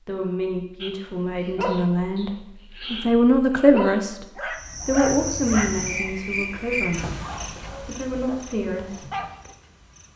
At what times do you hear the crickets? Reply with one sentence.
You can hear the crickets from 4.5 to 10.1 s.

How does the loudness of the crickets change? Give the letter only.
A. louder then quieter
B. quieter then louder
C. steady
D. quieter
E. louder
D.